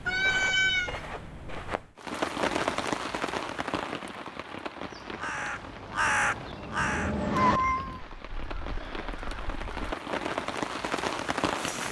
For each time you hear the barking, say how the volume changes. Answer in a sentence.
The barking can't be heard in this clip.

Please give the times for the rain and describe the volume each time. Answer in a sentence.
The rain can be heard from 1.9 to 11.8 s, getting quieter then louder.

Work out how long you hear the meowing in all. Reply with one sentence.
You can hear the meowing for 2 seconds altogether.